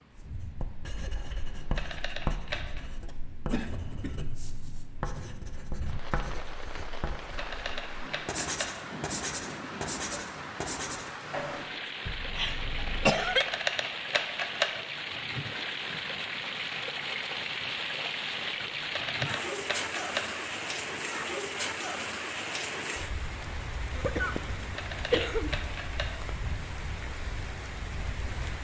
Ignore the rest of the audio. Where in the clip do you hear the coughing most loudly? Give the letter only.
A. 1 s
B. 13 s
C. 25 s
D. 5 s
B.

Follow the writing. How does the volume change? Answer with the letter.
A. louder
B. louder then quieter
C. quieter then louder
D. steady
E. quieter
A.